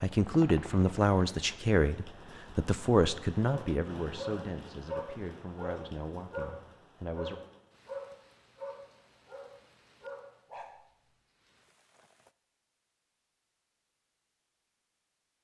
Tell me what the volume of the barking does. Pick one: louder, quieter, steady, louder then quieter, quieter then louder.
quieter.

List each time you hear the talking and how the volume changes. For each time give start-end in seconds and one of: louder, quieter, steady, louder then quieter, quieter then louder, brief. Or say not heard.
0.0-7.4 quieter.